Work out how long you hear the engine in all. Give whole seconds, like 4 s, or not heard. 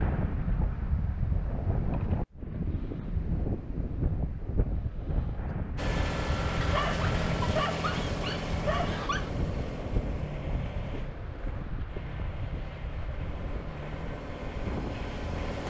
10 s.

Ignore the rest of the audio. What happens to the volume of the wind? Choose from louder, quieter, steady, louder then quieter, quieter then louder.
quieter.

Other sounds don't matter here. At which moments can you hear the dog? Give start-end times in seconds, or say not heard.
6.6-9.3.